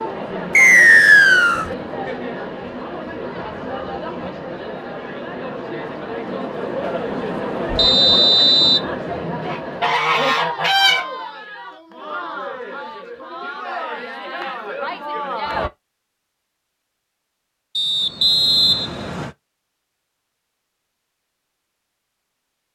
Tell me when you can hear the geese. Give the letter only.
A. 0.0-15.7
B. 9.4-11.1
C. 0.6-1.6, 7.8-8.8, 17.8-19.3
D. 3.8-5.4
B.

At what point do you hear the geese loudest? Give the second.
11 s.